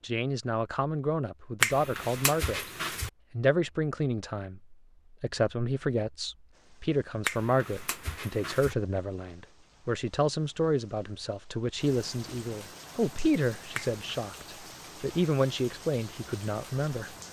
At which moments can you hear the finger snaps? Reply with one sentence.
You can hear the finger snaps from 1.6 to 3.1 s, from 7.2 to 8.8 s and from 13.8 to 14.2 s.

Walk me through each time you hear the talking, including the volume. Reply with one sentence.
You can hear the talking briefly from 0.0 to 2.6 s; and from 3.3 to 17.1 s, at a steady volume.